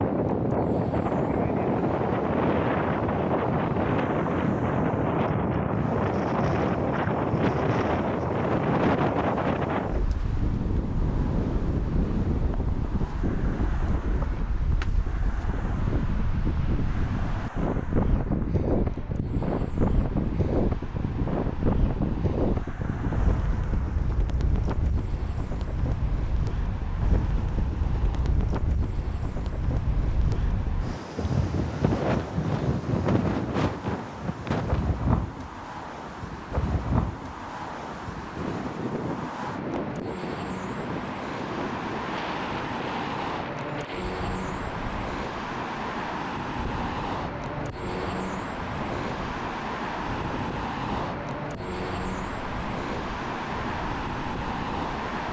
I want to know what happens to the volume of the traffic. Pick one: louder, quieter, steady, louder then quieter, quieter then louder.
louder.